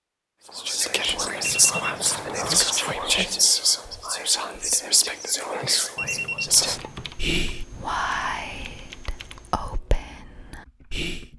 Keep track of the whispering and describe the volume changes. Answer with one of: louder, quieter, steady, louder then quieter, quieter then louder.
quieter.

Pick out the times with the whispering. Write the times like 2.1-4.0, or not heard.
0.6-11.2.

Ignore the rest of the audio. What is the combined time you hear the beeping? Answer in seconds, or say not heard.
2 s.